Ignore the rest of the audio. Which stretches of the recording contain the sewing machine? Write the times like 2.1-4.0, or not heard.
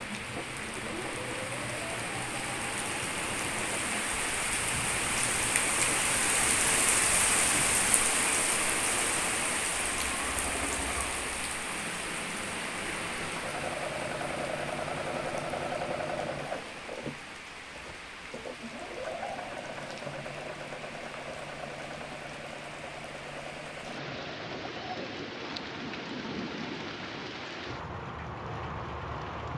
0.0-29.5.